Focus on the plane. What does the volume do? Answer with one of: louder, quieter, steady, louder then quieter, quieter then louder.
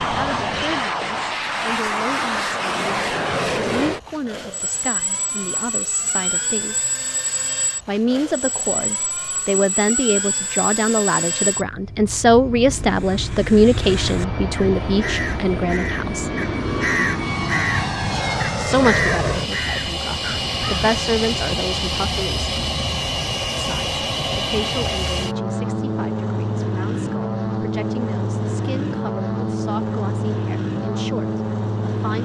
steady.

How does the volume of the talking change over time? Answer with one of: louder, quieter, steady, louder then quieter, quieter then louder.
louder then quieter.